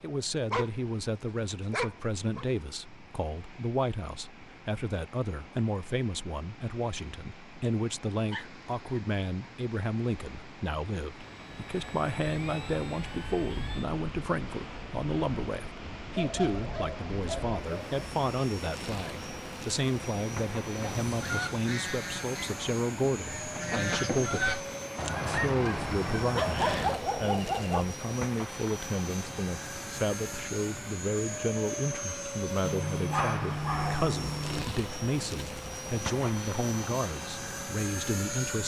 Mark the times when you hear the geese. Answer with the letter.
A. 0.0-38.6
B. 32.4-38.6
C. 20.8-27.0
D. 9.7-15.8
C.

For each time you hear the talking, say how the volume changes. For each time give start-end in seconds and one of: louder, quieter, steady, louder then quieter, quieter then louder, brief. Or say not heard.
0.0-38.6 steady.